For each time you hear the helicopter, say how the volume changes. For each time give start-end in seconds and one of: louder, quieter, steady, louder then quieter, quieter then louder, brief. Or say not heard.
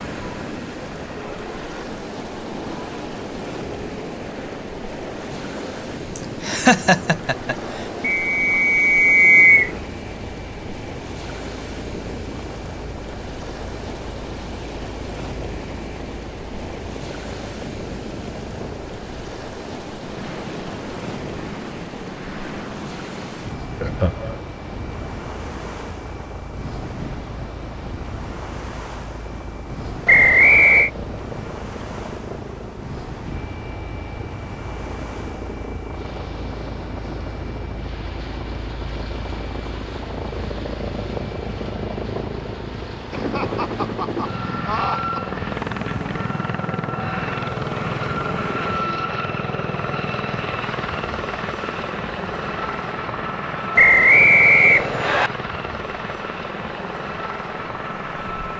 0.0-58.5 louder.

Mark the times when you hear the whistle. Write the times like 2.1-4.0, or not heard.
8.0-9.7, 30.1-30.9, 53.8-55.3.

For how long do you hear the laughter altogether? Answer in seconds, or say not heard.
4 s.